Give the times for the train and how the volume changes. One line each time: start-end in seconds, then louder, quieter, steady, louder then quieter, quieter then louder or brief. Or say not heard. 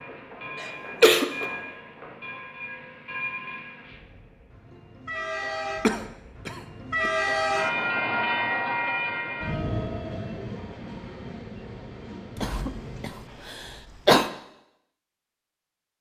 0.0-13.6 louder then quieter.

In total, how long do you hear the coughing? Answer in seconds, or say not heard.
4 s.